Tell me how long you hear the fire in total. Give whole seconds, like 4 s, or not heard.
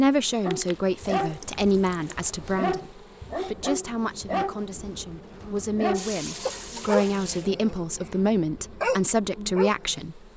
not heard.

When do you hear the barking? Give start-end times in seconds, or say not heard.
0.5-9.8.